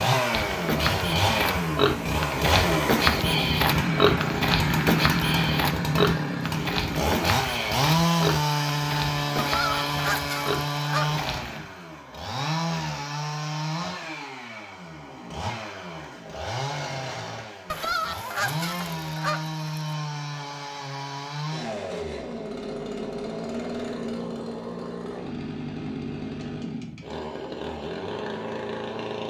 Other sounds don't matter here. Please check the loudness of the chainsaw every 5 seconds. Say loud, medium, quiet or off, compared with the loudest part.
loud, loud, medium, medium, medium, medium.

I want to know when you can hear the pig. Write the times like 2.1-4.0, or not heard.
0.3-11.6.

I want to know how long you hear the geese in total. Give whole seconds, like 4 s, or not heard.
4 s.